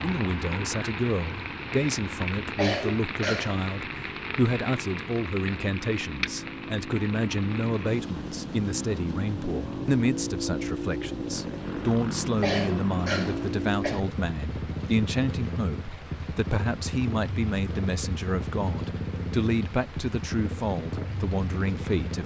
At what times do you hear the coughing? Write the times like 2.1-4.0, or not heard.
2.5-3.6, 12.4-14.0.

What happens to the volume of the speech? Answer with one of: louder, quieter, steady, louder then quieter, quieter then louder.
steady.